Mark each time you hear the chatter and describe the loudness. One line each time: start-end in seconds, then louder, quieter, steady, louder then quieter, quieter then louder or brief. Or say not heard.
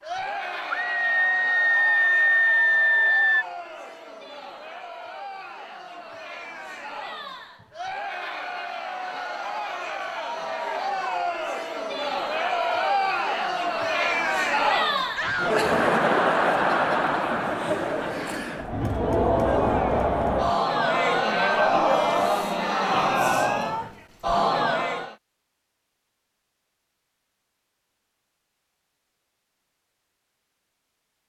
0.0-25.1 louder.